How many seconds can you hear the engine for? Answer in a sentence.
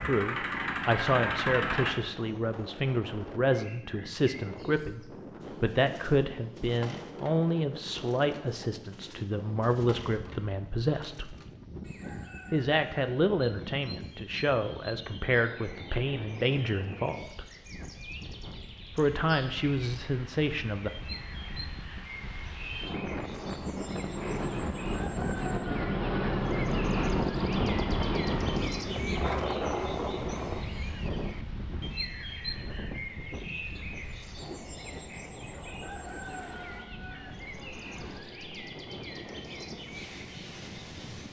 You can hear the engine for 2 seconds altogether.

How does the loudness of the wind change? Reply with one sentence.
The volume of the wind goes up, then down.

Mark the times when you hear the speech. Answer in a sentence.
The speech can be heard from 0.0 to 11.3 s, from 12.5 to 17.5 s and from 18.9 to 20.9 s.